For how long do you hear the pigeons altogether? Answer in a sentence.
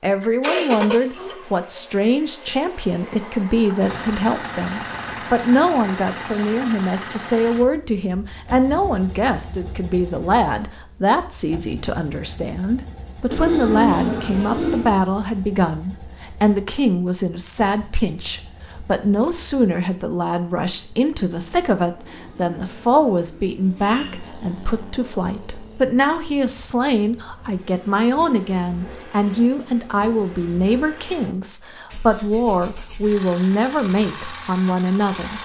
You can hear the pigeons for 4 seconds altogether.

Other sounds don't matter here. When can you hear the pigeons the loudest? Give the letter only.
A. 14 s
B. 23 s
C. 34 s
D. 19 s
A.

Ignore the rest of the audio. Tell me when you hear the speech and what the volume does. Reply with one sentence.
You can hear the speech from 0.0 to 35.3 s, at a steady volume.